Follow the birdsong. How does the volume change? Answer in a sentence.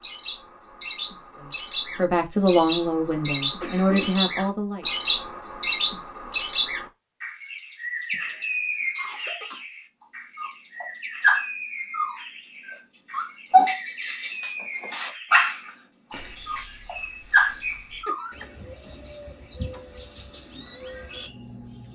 The loudness of the birdsong goes down.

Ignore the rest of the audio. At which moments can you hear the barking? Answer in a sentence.
The barking can be heard from 10.3 to 18.2 s.